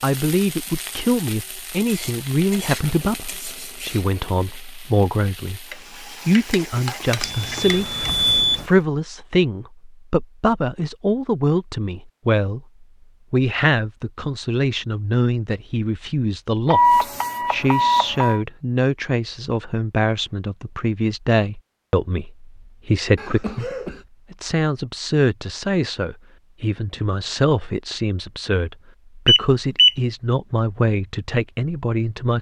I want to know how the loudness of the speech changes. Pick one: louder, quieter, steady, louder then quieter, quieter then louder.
steady.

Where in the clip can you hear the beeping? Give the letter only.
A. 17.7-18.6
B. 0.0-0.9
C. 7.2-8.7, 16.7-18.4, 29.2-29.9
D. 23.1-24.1
C.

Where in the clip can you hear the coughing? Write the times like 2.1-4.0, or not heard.
23.1-24.1.